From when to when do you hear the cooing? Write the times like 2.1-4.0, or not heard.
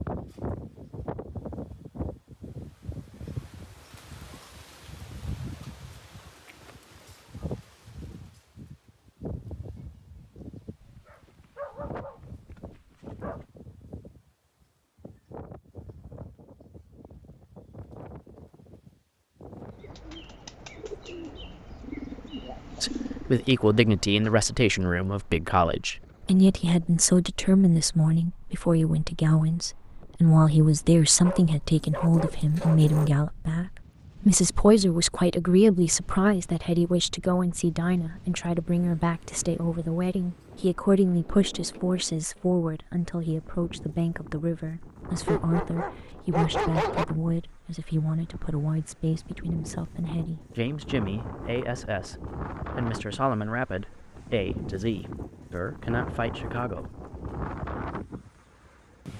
19.6-24.4.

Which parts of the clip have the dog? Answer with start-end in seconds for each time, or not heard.
10.8-13.4, 31.2-33.1, 45.2-47.0.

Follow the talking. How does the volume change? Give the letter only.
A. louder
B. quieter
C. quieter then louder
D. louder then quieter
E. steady
B.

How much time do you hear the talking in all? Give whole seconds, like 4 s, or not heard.
34 s.